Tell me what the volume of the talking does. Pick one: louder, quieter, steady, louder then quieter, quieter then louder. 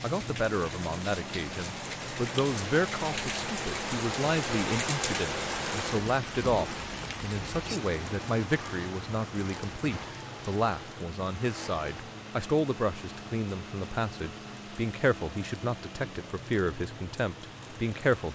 steady.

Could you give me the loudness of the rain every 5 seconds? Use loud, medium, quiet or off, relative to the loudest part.
loud, loud, quiet, quiet.